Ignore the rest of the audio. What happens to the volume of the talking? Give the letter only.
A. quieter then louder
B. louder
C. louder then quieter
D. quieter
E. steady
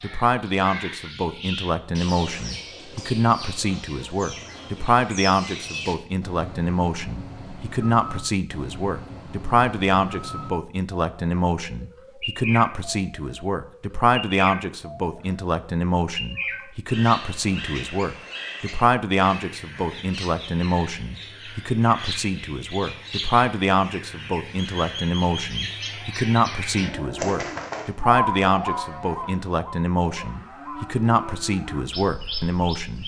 E.